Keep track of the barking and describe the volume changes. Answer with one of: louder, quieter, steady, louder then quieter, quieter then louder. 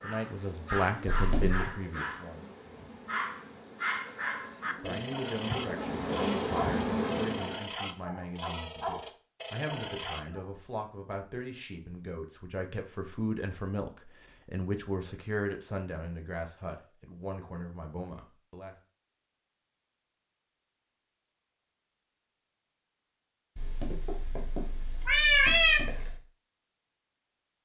steady.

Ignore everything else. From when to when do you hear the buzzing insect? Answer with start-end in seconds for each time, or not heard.
0.0-7.7.